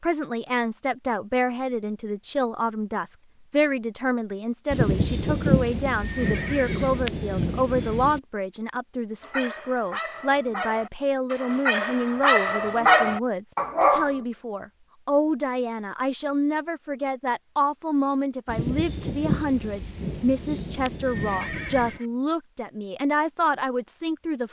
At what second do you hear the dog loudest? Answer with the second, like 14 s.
13 s.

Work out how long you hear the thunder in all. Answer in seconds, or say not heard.
7 s.